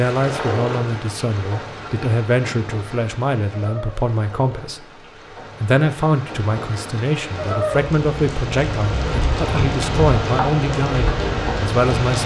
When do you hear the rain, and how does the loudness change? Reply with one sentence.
The rain can be heard from 0.0 to 12.2 s, getting quieter then louder.